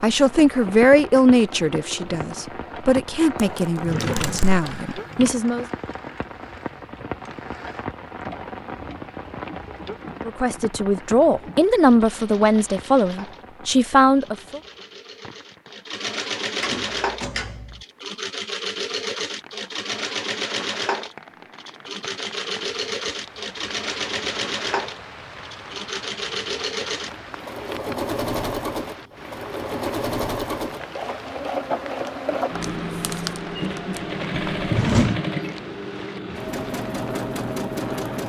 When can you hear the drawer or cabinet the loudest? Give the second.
35 s.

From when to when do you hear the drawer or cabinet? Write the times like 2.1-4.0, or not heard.
3.8-5.3, 16.6-17.9, 34.5-35.2.